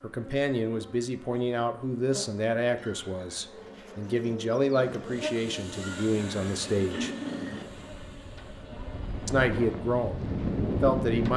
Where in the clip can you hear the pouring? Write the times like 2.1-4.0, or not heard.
2.8-3.5, 5.8-7.7.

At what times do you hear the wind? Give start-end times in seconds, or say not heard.
4.8-11.3.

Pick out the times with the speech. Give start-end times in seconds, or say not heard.
0.0-7.1, 9.2-11.3.